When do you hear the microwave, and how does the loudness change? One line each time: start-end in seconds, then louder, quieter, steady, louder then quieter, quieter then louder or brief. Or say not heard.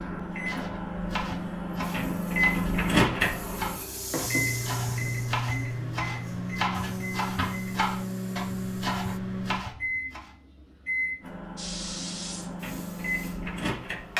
0.0-14.1 quieter.